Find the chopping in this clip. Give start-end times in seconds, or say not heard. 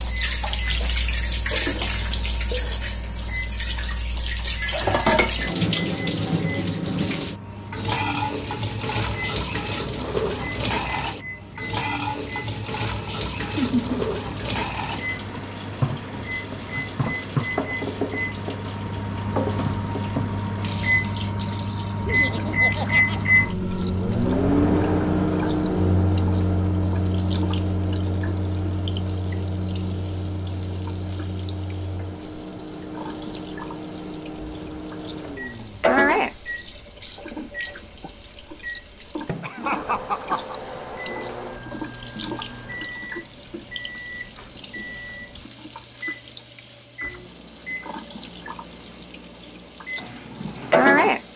not heard.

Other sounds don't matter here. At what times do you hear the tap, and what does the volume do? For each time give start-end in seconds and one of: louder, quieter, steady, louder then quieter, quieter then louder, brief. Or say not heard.
0.0-51.3 quieter then louder.